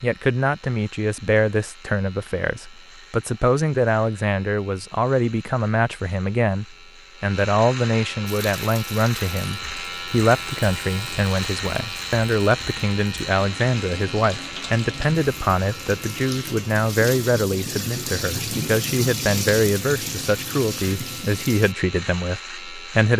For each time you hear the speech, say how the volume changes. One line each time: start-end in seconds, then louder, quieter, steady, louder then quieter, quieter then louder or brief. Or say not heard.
0.0-23.1 steady.